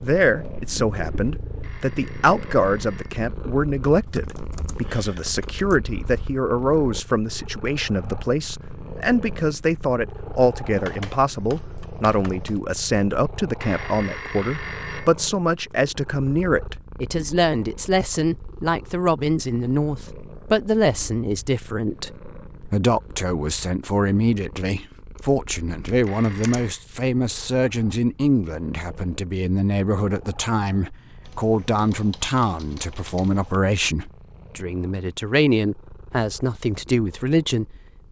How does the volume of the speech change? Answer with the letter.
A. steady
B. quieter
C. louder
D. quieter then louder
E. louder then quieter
A.